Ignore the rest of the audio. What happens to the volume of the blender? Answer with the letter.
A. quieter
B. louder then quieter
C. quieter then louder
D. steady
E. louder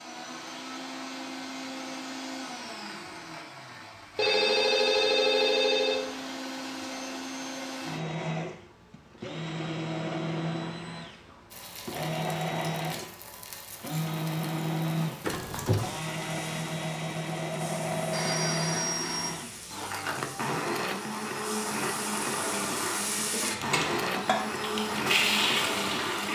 E.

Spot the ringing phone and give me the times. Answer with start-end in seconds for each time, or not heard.
4.2-6.1, 15.2-16.0, 17.9-19.3.